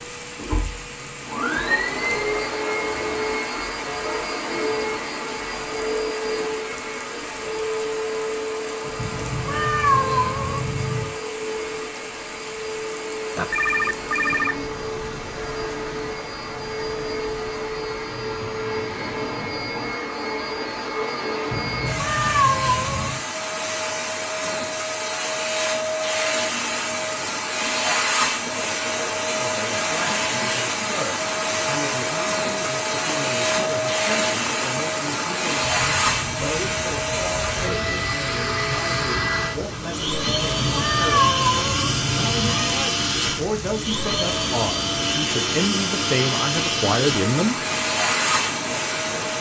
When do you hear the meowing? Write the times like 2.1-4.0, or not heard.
8.9-11.2, 21.5-23.2, 40.2-42.7.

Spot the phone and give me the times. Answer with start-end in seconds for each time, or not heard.
13.3-14.7.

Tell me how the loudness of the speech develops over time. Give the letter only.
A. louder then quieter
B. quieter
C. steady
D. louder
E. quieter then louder
D.